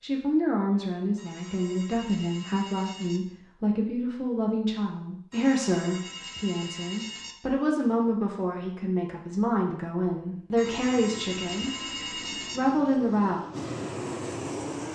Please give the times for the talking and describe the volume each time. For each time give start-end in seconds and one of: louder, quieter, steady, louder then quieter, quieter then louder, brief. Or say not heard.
0.0-13.4 steady.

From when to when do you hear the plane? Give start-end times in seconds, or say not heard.
10.7-14.9.